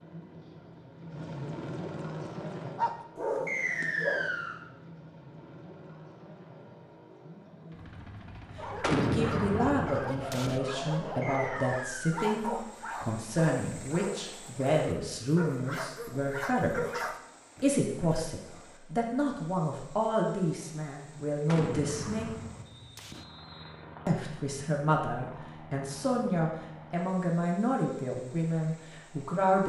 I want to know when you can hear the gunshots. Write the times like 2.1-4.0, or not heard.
8.8-10.6, 21.4-23.2.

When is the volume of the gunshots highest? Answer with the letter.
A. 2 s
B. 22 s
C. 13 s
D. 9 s
D.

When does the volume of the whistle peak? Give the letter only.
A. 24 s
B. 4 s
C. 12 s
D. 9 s
B.